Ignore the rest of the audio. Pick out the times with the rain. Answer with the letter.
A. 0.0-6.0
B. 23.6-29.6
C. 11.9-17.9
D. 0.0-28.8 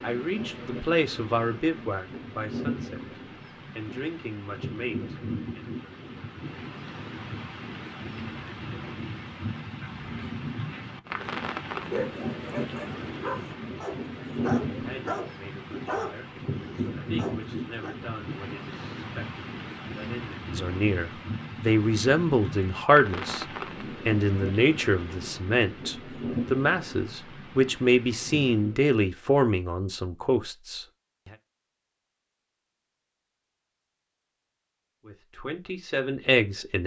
D.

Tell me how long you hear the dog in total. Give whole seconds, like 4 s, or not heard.
6 s.